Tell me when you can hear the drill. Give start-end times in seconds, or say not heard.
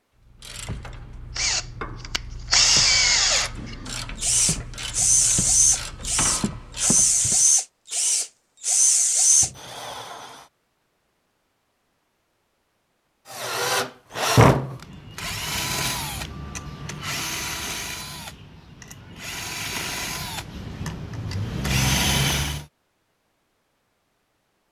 1.4-10.4, 13.3-22.6.